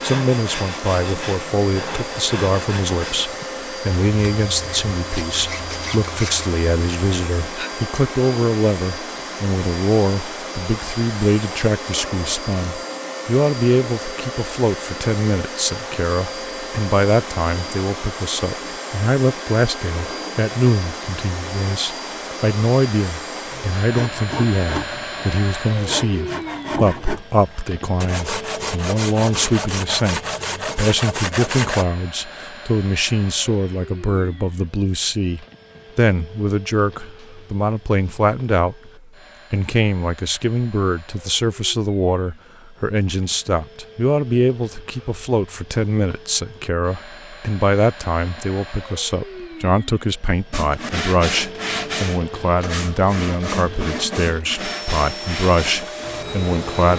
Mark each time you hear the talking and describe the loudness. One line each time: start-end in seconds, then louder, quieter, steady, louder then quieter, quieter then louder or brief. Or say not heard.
0.0-38.9 steady
39.5-56.9 steady.